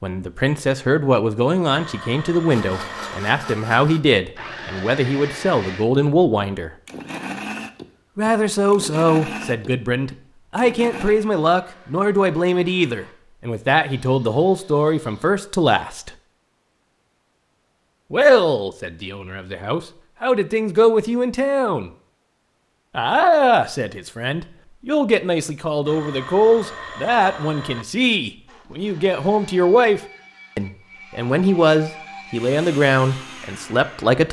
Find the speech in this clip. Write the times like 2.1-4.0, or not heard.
0.0-6.7, 8.2-16.1, 18.1-21.9, 22.9-34.2.